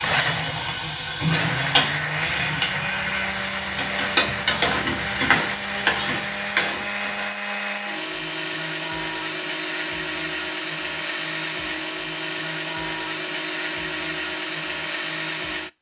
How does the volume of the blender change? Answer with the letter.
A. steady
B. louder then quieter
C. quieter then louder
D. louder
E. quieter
A.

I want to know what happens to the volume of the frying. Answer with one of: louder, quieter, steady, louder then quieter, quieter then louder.
steady.